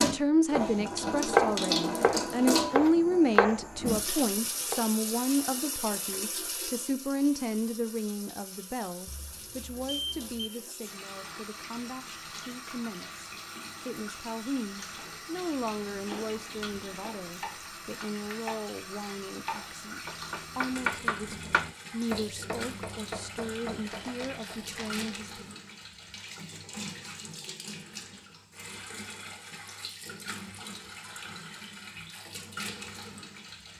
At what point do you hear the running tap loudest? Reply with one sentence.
The volume of the running tap peaks at 2 seconds.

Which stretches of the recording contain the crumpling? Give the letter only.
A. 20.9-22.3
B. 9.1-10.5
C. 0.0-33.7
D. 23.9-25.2
D.